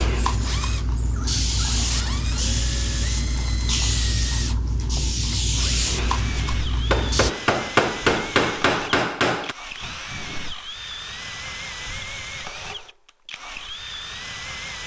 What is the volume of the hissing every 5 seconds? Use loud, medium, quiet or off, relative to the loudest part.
loud, loud, off.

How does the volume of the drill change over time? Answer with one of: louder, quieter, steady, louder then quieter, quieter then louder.
steady.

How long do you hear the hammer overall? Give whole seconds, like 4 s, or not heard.
3 s.